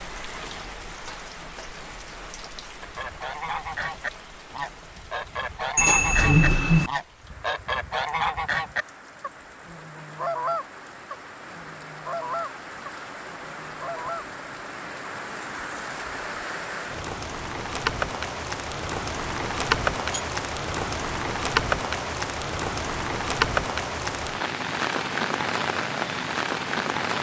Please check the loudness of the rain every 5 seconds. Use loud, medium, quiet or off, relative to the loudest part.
quiet, quiet, quiet, loud, loud, loud.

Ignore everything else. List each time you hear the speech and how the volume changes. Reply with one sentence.
You can't hear the speech here.